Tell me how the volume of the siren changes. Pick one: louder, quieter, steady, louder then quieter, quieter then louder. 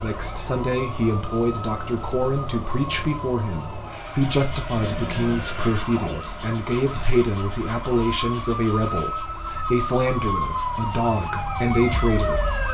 louder.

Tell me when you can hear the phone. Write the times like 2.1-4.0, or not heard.
4.7-6.3.